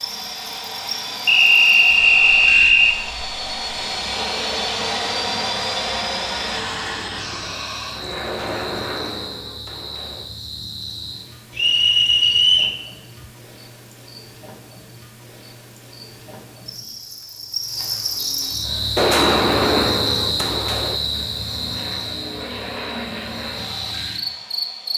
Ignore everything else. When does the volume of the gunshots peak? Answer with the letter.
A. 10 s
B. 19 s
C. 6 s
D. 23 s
B.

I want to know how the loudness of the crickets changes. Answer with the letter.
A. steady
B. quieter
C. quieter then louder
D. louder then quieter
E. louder
E.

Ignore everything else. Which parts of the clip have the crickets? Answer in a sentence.
The crickets can be heard from 0.0 to 24.9 s.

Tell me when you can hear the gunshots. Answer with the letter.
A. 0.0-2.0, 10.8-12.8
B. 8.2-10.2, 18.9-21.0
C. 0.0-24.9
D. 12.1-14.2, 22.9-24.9
B.